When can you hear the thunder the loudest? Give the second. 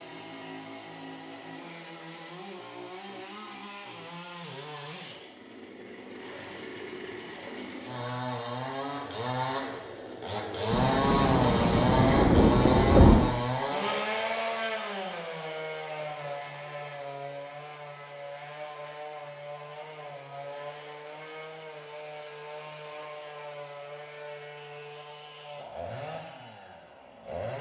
13 s.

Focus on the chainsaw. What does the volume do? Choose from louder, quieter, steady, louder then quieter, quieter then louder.
louder then quieter.